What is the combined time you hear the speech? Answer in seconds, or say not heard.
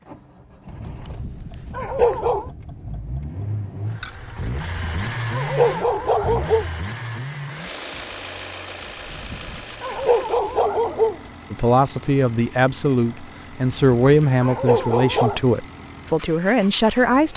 6 s.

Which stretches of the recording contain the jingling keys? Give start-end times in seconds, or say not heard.
4.0-4.5.